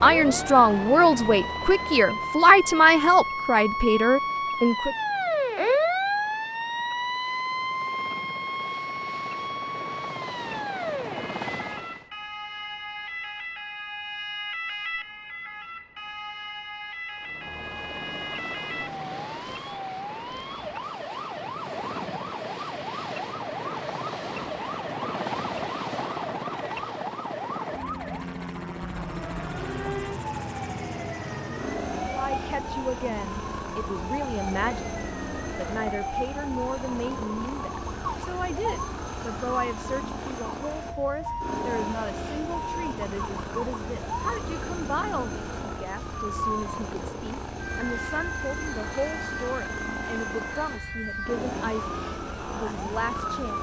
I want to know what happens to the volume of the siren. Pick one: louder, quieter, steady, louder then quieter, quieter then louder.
quieter.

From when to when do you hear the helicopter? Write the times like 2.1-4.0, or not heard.
0.0-12.1, 17.1-53.5.